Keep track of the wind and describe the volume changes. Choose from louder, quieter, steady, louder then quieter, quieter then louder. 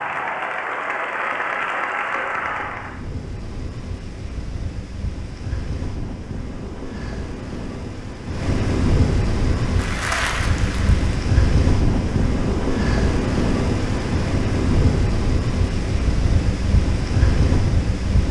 louder.